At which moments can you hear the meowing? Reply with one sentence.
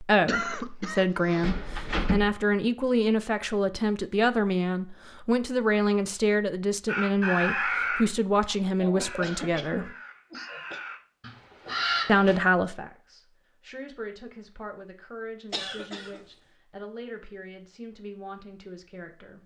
The meowing can be heard from 1.4 to 2.3 s.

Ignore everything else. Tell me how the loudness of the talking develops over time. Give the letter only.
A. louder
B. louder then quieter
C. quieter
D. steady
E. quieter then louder
C.